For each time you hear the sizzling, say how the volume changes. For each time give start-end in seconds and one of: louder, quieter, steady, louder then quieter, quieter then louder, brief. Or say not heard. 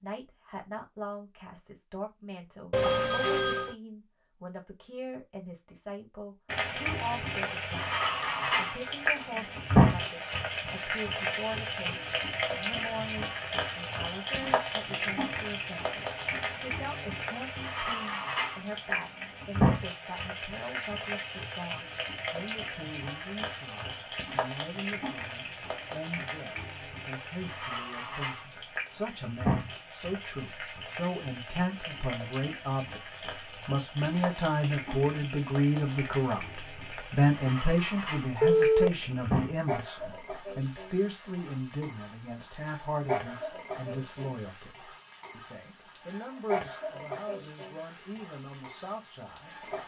6.5-49.8 quieter.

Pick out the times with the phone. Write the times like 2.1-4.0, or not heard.
2.7-3.8, 38.4-38.9.